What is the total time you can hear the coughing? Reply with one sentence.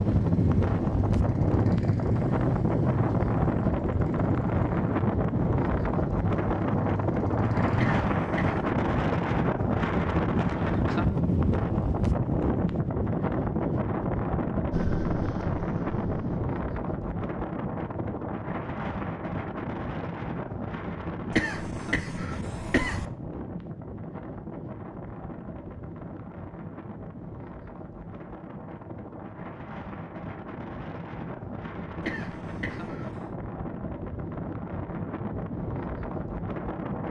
The coughing can be heard for 4 seconds in total.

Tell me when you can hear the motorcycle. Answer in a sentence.
The motorcycle can be heard from 0.0 to 8.0 s and from 14.7 to 16.4 s.